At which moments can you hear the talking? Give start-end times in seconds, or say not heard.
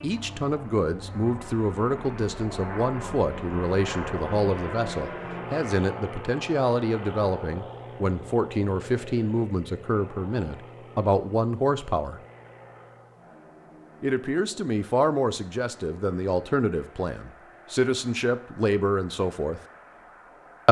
0.0-12.2, 14.0-19.6.